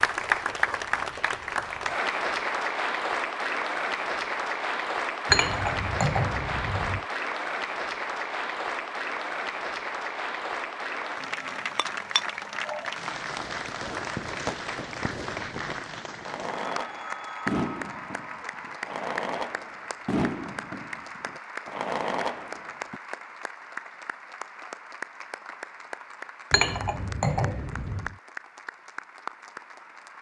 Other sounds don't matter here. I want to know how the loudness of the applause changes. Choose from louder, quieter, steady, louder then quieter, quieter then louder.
quieter.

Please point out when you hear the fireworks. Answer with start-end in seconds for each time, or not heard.
13.3-23.0.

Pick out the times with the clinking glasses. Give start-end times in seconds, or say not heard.
5.2-7.0, 11.8-12.9, 26.5-28.1.